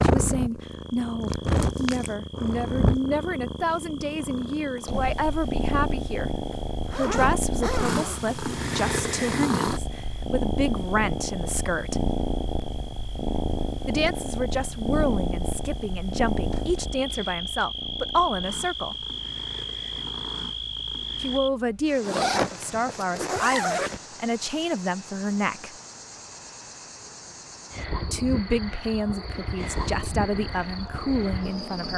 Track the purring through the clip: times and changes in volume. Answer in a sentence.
The purring can be heard from 0.0 to 21.4 s, getting quieter; and briefly from 29.6 to 31.9 s.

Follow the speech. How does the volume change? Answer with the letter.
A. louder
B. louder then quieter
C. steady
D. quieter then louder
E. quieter
C.